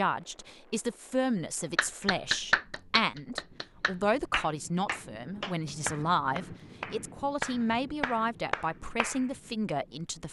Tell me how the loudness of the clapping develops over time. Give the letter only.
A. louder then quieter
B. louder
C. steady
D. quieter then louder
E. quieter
E.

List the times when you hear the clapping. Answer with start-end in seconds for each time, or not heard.
1.8-9.2.